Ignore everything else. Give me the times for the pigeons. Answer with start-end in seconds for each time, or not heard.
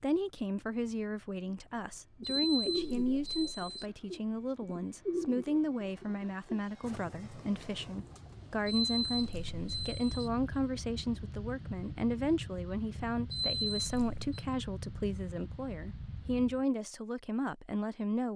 2.2-9.6.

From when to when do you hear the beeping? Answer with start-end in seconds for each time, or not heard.
2.2-3.9, 8.7-10.3, 13.3-14.2.